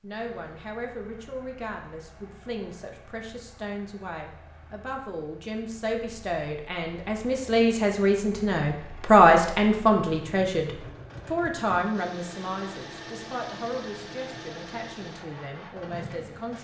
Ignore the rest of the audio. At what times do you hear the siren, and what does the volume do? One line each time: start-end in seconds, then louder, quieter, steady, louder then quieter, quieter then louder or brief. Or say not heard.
not heard.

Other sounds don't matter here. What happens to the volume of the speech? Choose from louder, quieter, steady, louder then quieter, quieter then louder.
louder then quieter.